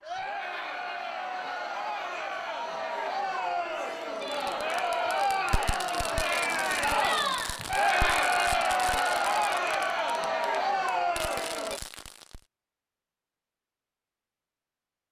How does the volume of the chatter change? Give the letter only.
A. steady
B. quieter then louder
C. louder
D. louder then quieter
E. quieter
C.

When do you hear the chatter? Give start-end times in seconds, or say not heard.
0.0-11.8.